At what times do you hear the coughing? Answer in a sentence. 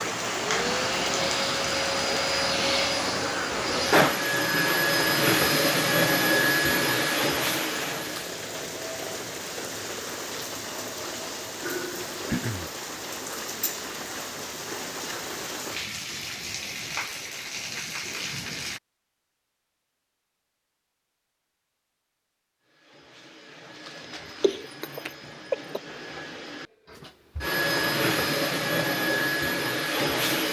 The coughing can be heard from 12.2 to 12.7 s and from 24.4 to 25.8 s.